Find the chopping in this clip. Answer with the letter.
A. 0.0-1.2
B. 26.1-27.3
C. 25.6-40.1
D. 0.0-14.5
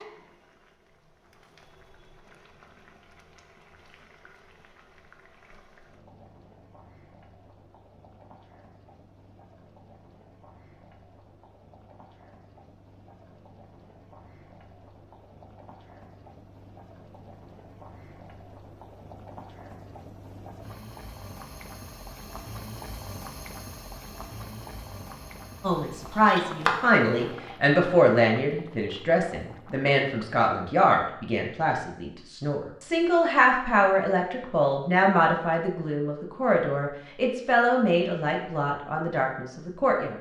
B.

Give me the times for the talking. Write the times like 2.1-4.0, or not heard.
25.6-40.1.